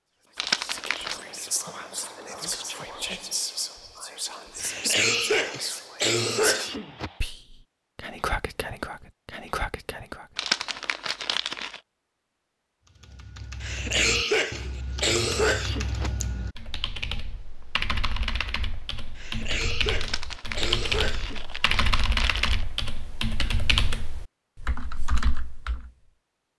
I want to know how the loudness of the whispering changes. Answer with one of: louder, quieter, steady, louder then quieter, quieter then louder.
steady.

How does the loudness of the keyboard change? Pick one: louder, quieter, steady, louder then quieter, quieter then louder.
louder.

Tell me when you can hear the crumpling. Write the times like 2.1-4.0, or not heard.
0.3-1.1, 10.3-11.8, 19.9-22.6.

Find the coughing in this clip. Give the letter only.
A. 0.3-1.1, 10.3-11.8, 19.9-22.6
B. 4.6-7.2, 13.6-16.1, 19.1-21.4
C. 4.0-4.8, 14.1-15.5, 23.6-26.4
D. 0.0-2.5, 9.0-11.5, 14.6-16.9
B.